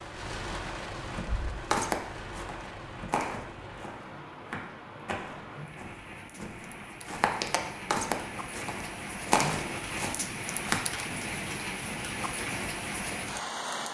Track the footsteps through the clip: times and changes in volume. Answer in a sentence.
You can hear the footsteps from 1.2 to 10.8 s, getting quieter then louder.